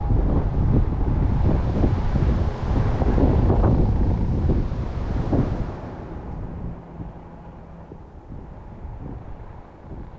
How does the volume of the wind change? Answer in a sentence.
The loudness of the wind goes down.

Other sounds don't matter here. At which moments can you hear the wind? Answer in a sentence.
The wind can be heard from 0.0 to 10.1 s.